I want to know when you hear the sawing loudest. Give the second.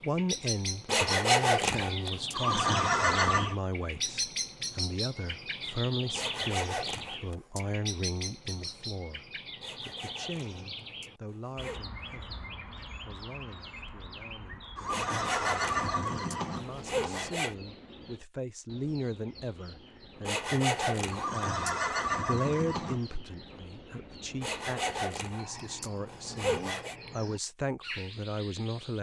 1 s.